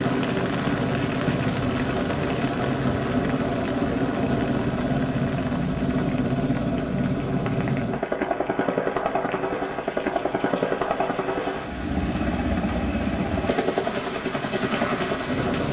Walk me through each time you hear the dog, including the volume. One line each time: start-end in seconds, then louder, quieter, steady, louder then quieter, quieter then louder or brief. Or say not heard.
not heard.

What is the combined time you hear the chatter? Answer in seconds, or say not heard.
not heard.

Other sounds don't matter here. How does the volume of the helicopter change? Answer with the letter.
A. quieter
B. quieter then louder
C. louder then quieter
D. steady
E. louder
D.